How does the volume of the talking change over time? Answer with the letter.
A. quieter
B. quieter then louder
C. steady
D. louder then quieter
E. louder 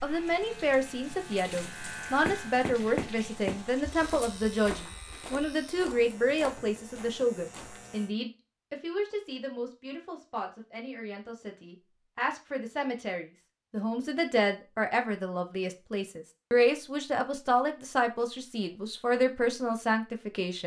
B.